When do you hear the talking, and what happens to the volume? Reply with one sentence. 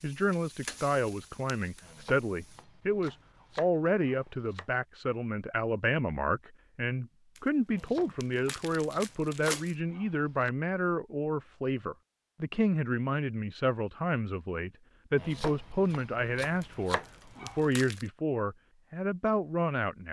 You can hear the talking from 0.0 to 20.0 s, at a steady volume.